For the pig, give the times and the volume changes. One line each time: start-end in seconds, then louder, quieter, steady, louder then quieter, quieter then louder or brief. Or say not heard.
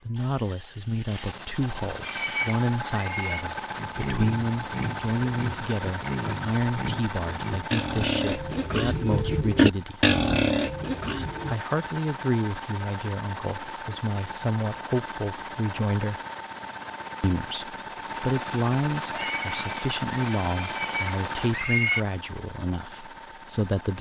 2.0-11.6 louder
19.1-22.0 brief.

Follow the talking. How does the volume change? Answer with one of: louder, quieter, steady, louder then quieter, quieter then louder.
steady.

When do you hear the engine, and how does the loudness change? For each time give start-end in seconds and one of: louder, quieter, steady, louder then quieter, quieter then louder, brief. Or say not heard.
0.0-23.9 steady.